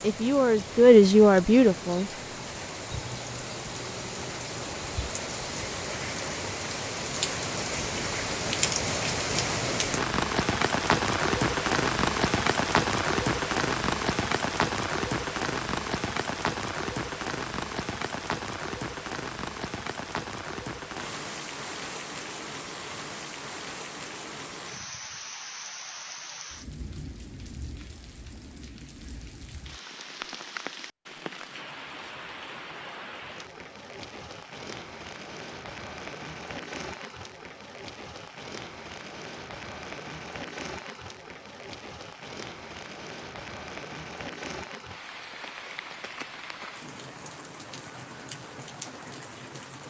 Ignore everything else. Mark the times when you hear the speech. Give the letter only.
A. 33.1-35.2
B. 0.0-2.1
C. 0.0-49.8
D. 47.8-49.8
B.